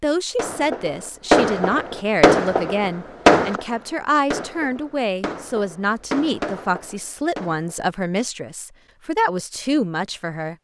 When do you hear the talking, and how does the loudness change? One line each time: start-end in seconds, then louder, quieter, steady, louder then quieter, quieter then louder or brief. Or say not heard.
0.0-10.5 steady.